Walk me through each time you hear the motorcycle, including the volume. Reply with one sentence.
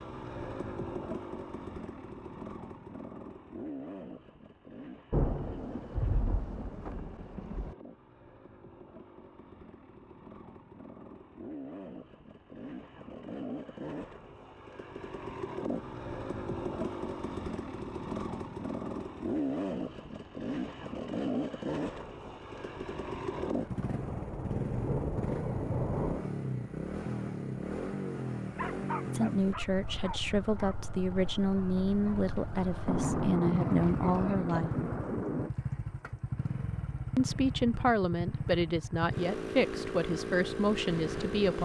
You can hear the motorcycle from 0.0 to 41.6 s, getting louder.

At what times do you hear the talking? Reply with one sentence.
You can hear the talking from 29.1 to 34.7 s and from 37.1 to 41.6 s.